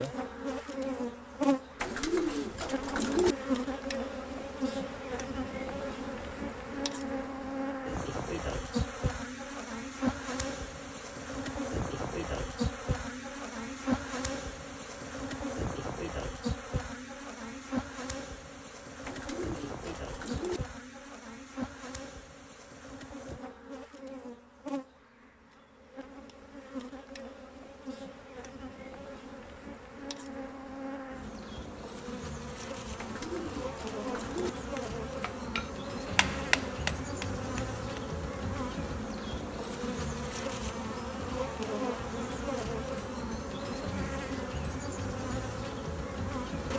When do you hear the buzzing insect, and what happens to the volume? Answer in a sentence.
The buzzing insect can be heard from 0.0 to 46.7 s, getting quieter then louder.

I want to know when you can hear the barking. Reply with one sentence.
You can't hear the barking here.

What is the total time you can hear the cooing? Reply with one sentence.
The cooing can be heard for 5 seconds in total.